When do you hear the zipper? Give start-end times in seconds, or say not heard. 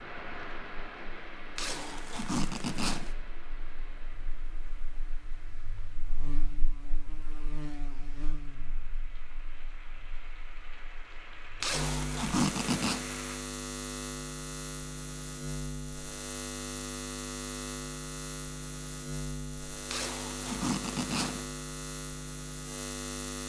1.6-3.1, 11.6-13.0, 19.9-21.4.